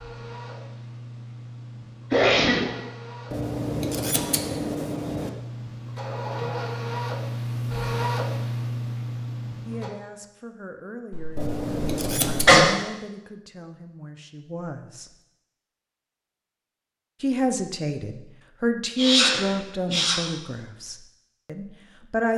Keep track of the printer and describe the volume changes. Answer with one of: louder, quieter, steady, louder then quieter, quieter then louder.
louder.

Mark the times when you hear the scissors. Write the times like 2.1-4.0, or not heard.
3.3-5.3, 11.3-12.5.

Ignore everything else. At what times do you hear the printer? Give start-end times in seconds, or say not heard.
0.0-9.9.